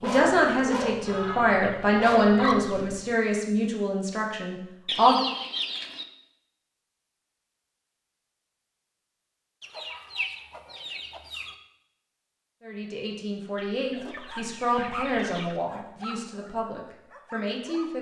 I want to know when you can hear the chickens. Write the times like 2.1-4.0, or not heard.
1.1-2.9, 4.8-6.0, 9.6-11.6, 13.6-15.6.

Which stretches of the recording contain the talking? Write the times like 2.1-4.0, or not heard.
0.0-5.2, 12.6-17.9.